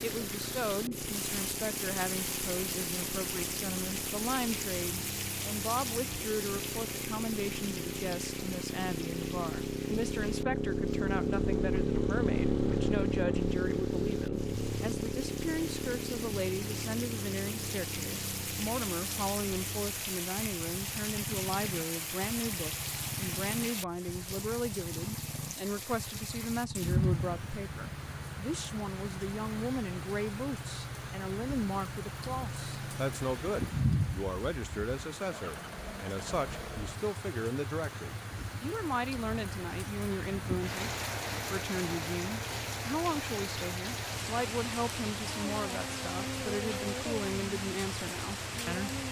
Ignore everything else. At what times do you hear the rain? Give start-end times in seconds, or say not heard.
0.0-49.0.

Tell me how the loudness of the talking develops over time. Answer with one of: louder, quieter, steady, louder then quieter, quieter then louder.
steady.